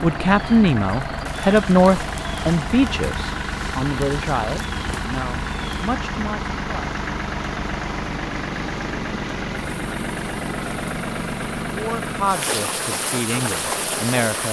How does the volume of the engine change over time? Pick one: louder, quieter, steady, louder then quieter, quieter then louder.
steady.